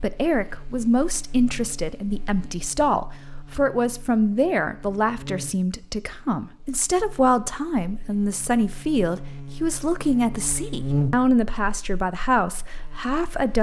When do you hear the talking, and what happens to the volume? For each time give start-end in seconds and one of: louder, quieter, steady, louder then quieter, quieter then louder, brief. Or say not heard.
0.0-13.5 steady.